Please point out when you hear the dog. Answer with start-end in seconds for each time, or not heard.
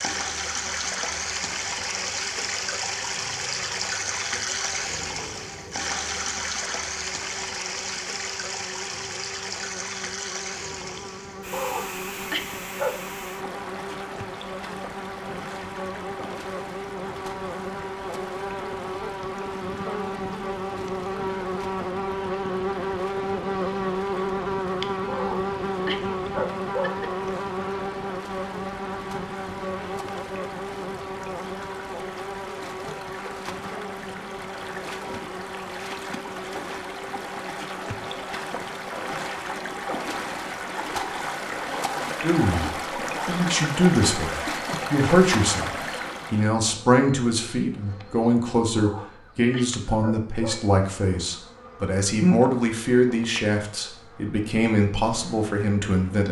11.5-13.0, 25.1-27.1, 48.8-50.6.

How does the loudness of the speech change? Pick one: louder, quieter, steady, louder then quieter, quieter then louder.
steady.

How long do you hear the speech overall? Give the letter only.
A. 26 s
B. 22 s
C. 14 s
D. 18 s
C.